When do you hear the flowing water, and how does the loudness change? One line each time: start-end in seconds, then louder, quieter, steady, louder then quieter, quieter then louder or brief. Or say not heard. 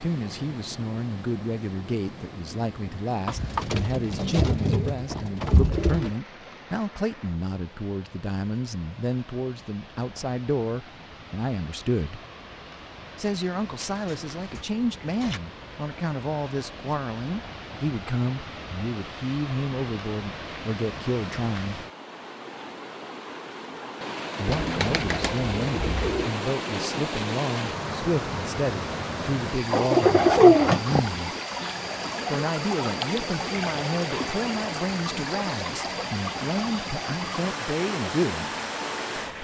0.0-39.3 louder.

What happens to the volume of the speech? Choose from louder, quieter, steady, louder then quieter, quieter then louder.
steady.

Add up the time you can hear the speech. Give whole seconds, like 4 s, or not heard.
34 s.